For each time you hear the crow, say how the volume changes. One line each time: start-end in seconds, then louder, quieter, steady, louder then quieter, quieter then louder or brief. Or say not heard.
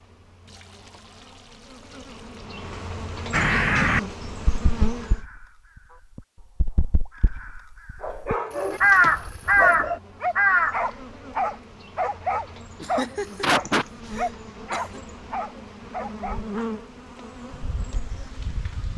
3.3-10.8 quieter then louder.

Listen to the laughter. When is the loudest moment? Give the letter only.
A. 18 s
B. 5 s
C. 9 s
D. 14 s
D.